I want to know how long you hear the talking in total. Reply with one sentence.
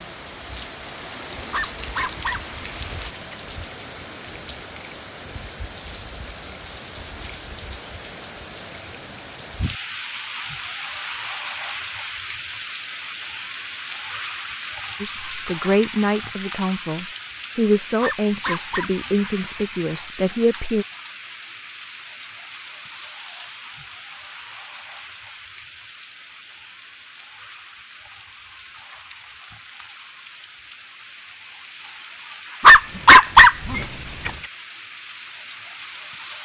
The talking can be heard for 6 seconds in total.